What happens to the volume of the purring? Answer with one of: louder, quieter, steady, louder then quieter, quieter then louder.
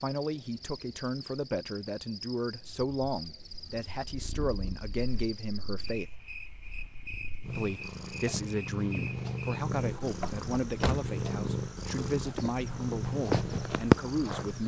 louder.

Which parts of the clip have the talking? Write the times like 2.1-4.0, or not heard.
0.0-6.1, 7.5-14.6.